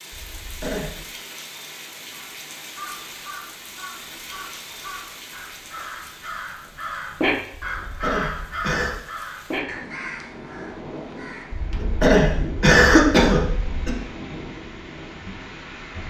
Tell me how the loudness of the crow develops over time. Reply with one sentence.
The loudness of the crow goes up, then down.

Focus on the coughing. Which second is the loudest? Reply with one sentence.
The volume of the coughing peaks at 13 seconds.